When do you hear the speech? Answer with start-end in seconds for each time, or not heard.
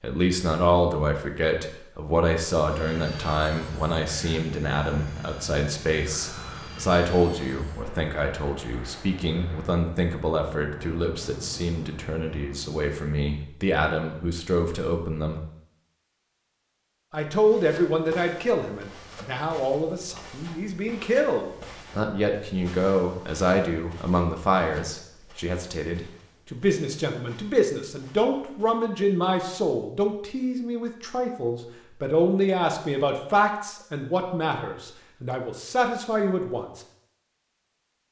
0.0-15.4, 17.1-36.8.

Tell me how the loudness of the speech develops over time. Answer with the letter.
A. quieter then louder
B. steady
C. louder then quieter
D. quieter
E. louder
B.